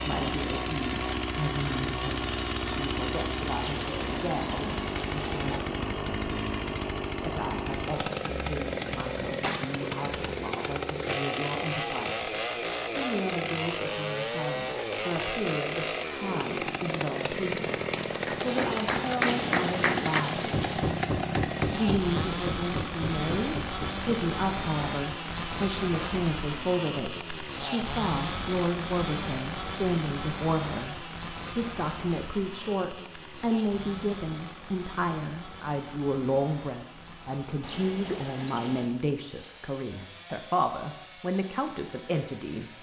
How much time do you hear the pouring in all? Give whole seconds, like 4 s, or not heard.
5 s.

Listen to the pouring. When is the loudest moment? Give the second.
20 s.